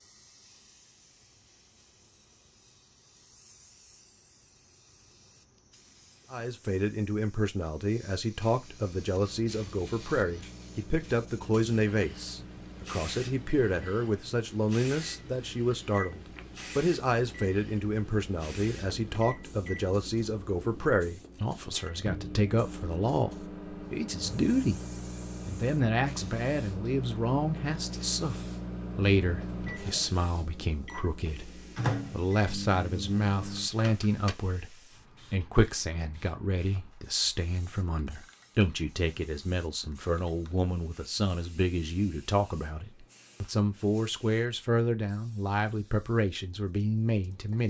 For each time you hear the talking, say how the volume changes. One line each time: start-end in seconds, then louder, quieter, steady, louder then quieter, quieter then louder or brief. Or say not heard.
6.3-24.8 steady
25.4-47.6 steady.